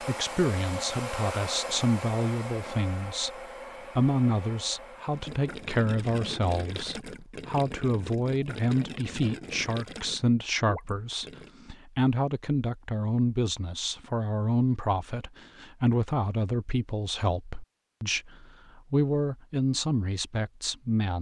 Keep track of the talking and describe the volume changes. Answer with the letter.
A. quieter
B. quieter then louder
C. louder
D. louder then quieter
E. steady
E.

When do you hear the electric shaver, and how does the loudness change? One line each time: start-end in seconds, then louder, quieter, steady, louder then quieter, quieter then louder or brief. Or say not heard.
not heard.